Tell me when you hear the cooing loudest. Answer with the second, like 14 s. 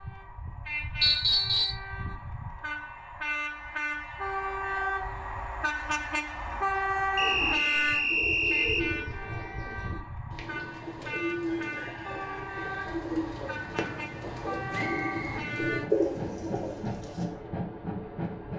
16 s.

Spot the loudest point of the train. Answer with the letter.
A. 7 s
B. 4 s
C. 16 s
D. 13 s
A.